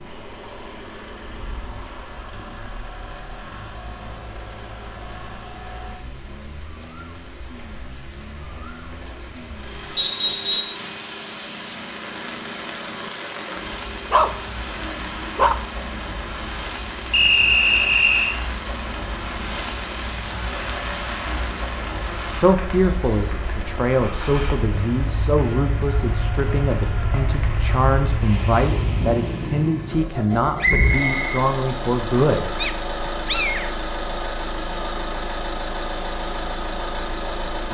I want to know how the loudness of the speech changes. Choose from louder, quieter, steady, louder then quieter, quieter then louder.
steady.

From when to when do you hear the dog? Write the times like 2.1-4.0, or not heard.
14.1-15.6, 32.5-33.7.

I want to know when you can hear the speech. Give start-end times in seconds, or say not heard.
22.4-33.1.